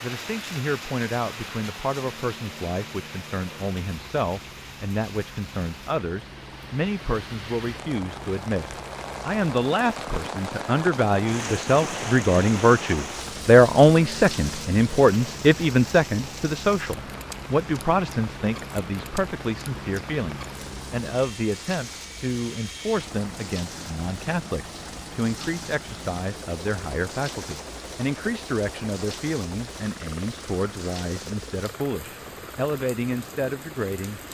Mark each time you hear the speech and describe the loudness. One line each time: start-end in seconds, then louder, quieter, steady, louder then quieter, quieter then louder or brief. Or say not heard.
0.0-34.2 louder then quieter.